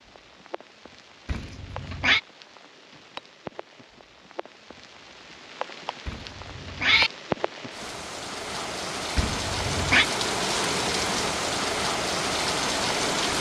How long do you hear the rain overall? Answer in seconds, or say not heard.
13 s.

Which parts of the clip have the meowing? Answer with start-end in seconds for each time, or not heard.
1.2-2.2, 6.0-7.1, 9.2-10.1.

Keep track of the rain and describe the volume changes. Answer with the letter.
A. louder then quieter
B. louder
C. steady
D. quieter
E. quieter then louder
B.